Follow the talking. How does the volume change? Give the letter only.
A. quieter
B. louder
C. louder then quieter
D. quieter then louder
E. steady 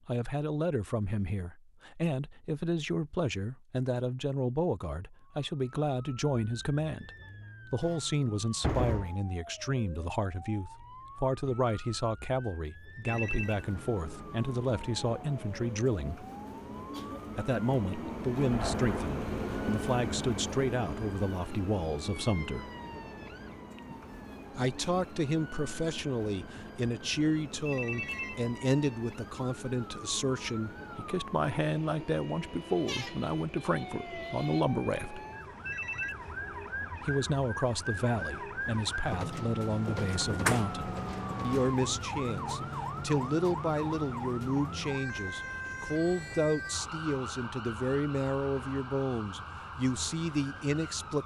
E.